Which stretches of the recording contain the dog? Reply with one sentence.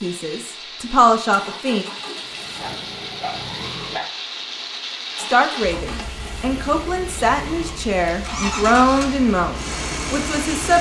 You can hear the dog from 2.0 to 4.2 s.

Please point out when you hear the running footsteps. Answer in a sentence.
The running footsteps can't be heard in this clip.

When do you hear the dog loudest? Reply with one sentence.
The volume of the dog peaks at 4 seconds.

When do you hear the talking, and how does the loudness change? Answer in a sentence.
The talking can be heard briefly from 0.0 to 1.9 s; and from 5.2 to 10.7 s, getting louder then quieter.